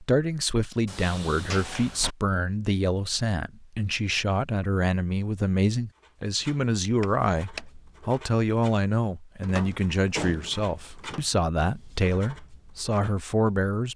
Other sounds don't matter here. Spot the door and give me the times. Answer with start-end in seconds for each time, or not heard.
0.8-2.1, 7.0-7.7, 9.4-11.2.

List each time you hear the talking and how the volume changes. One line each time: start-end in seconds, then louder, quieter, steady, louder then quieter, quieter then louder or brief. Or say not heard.
0.0-13.9 steady.